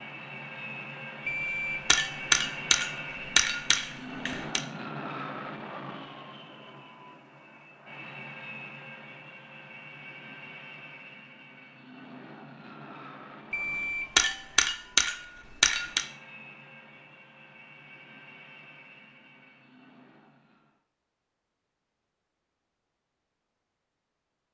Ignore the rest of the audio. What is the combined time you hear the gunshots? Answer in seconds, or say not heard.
6 s.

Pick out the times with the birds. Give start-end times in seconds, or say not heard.
not heard.